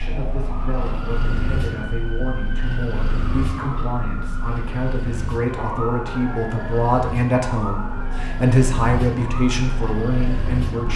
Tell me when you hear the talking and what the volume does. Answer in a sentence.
The talking can be heard from 0.0 to 10.9 s, getting louder.